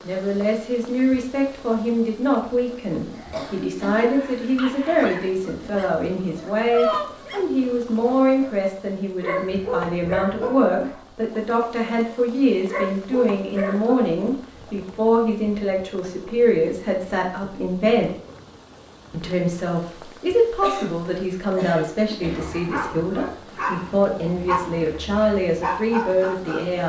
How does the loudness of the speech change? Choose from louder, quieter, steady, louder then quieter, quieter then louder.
steady.